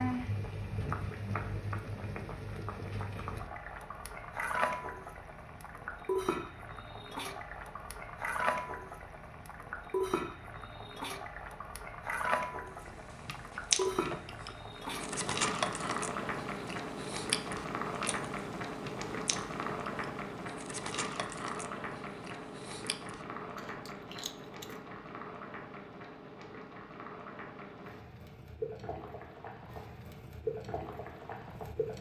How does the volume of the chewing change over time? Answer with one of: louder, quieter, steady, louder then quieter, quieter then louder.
quieter.